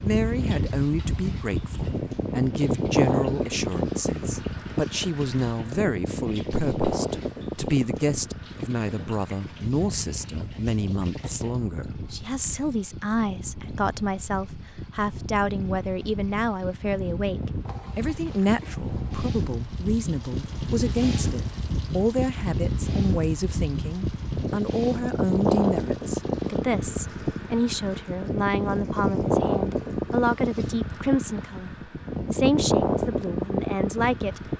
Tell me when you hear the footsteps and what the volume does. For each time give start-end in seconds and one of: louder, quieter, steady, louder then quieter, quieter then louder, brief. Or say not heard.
not heard.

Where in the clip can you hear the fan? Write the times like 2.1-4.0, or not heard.
0.0-34.5.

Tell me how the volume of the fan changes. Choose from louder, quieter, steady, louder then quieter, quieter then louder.
quieter then louder.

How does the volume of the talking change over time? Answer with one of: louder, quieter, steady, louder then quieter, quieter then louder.
steady.